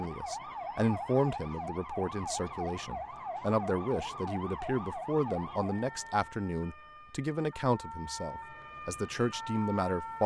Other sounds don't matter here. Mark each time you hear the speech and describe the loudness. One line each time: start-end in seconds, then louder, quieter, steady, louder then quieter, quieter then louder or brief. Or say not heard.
0.0-10.2 steady.